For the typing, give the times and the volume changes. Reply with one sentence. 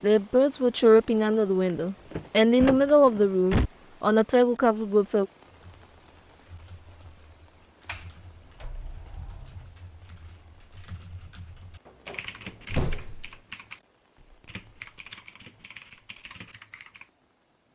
You can hear the typing from 5.5 to 17.1 s, getting louder.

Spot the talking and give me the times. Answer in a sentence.
You can hear the talking from 0.0 to 5.2 s.